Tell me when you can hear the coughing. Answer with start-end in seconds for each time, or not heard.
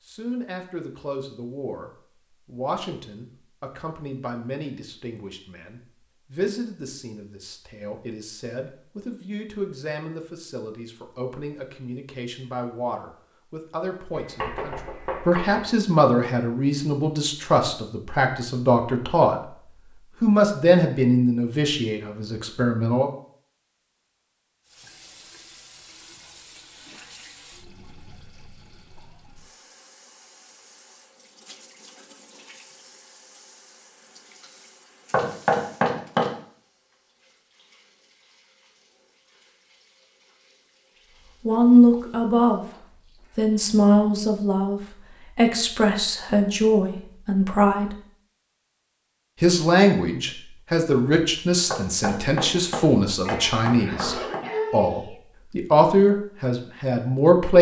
53.2-55.1.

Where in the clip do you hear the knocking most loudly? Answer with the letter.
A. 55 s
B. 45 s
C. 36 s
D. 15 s
C.